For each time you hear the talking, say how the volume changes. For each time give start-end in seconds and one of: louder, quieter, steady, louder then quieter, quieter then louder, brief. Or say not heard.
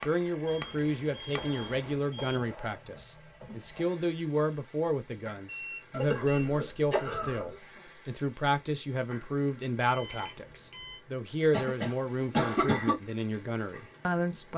0.1-14.5 steady.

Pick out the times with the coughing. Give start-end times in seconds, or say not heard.
1.4-1.9, 5.9-7.6, 11.5-13.0.